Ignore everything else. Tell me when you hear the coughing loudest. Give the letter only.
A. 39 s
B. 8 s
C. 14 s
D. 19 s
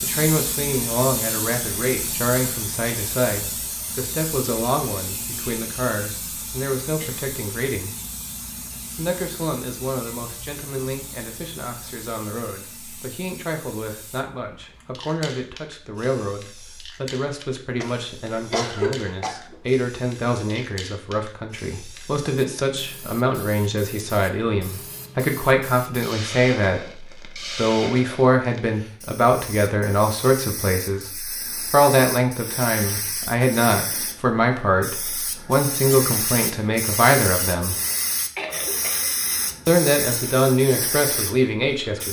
D.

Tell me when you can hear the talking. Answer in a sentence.
You can hear the talking from 0.0 to 8.0 s, from 8.9 to 37.8 s and from 39.6 to 42.0 s.